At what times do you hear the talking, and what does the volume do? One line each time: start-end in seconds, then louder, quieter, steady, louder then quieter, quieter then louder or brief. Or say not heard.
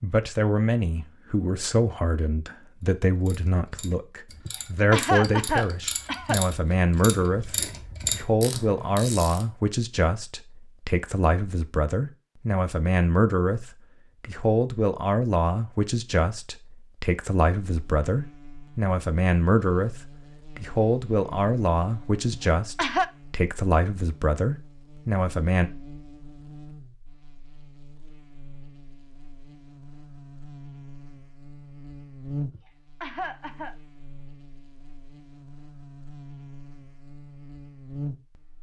0.0-25.7 steady.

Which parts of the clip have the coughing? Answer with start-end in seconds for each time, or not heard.
4.5-6.4, 22.3-23.1, 32.5-33.8.